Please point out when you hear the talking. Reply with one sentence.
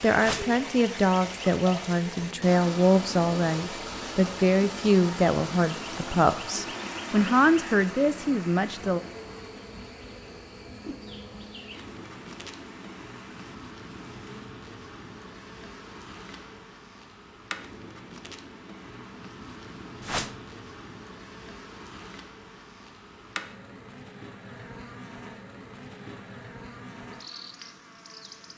The talking can be heard from 0.0 to 9.0 s.